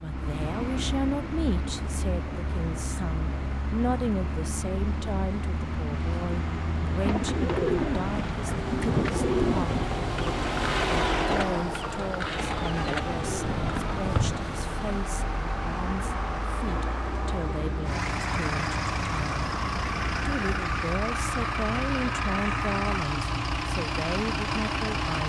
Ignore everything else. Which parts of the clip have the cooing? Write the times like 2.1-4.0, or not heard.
6.9-14.5.